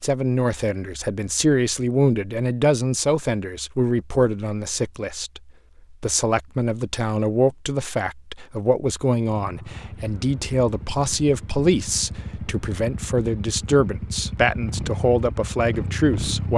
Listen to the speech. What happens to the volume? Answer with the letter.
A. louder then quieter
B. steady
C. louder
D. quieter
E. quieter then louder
B.